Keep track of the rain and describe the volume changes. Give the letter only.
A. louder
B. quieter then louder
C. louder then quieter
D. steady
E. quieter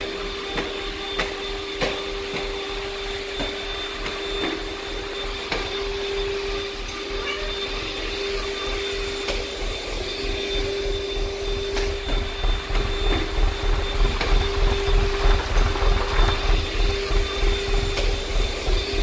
A.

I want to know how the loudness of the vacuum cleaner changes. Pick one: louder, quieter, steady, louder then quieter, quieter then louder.
steady.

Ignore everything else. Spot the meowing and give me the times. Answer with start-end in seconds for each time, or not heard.
7.0-7.5.